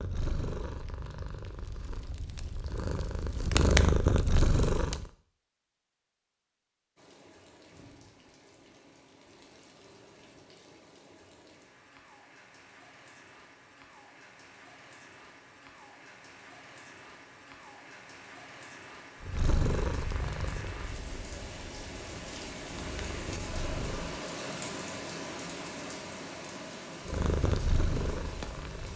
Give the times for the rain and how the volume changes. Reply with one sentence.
You can hear the rain from 7.0 to 28.9 s, getting louder.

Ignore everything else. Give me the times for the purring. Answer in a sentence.
You can hear the purring from 0.0 to 5.1 s, from 19.2 to 24.2 s and from 27.1 to 28.9 s.